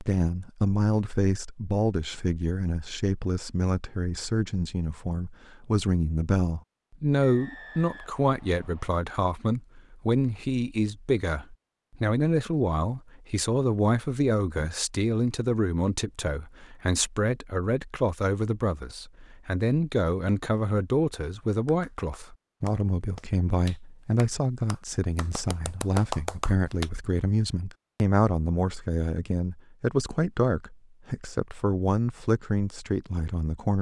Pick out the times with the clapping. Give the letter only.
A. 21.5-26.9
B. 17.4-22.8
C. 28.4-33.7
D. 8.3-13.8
A.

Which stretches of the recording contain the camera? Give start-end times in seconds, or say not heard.
not heard.